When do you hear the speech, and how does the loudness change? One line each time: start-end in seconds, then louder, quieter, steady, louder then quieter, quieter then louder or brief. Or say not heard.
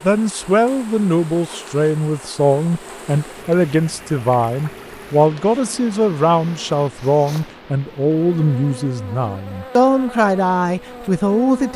0.0-11.7 steady.